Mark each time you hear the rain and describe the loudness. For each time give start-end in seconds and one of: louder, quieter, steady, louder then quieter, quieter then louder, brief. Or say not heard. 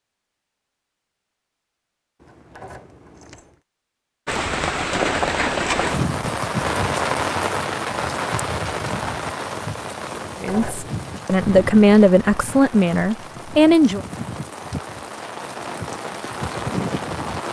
4.2-17.4 quieter then louder.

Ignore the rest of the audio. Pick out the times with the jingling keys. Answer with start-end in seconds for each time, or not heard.
2.2-3.6, 10.2-11.1.